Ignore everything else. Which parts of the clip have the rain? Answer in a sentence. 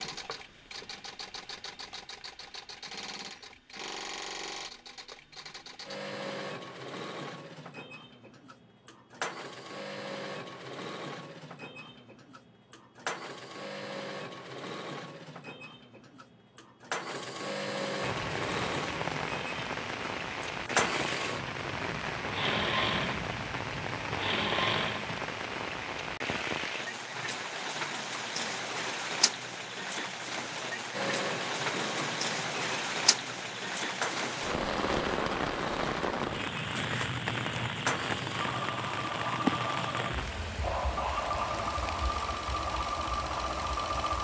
The rain can be heard from 18.0 to 44.2 s.